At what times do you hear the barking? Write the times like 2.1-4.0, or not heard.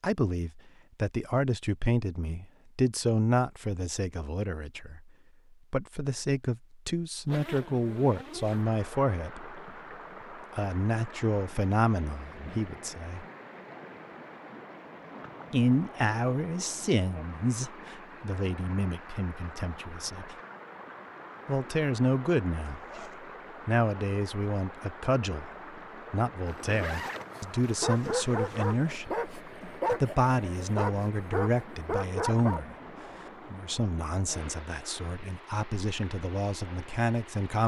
27.1-32.6.